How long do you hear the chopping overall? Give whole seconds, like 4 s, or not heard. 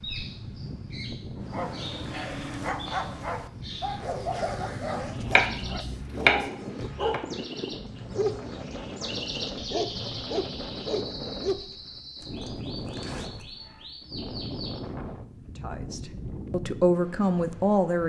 2 s.